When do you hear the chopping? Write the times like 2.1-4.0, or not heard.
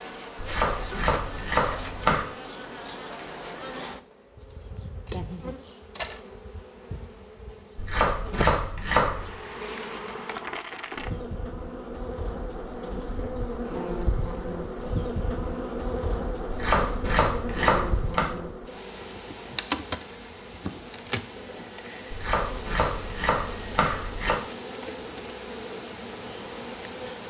0.4-2.2, 7.8-9.3, 16.5-18.3, 22.1-24.4.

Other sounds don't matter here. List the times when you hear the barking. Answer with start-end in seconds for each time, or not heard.
not heard.